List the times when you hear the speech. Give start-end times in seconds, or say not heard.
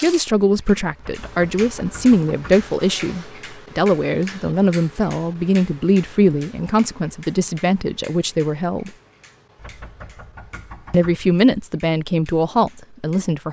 0.0-8.9, 10.9-13.4.